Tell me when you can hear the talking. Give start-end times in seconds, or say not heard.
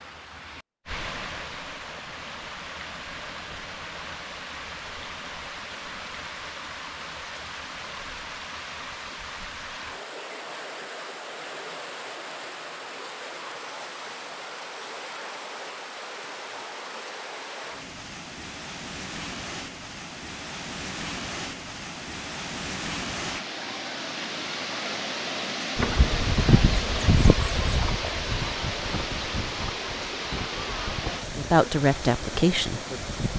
31.4-32.8.